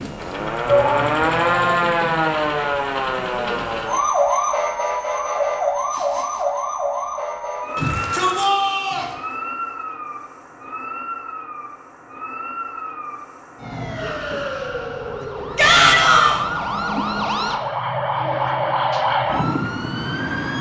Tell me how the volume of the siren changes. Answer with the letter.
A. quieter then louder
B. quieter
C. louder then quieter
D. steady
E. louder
A.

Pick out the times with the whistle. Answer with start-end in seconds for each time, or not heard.
not heard.